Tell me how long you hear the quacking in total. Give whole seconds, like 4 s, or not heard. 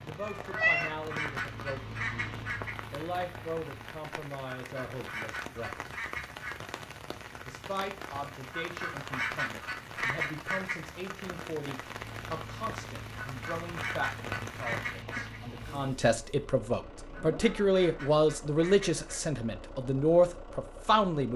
11 s.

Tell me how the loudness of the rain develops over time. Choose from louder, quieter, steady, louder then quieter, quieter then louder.
steady.